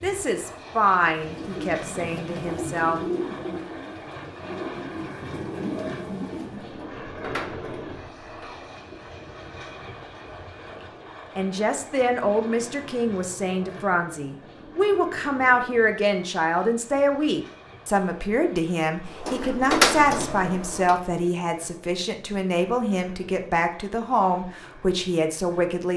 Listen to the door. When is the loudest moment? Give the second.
20 s.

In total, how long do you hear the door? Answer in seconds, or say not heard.
4 s.